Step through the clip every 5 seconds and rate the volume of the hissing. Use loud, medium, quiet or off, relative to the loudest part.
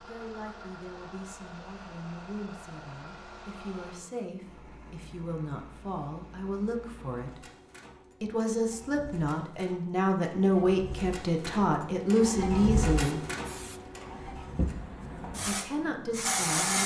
off, off, medium, loud.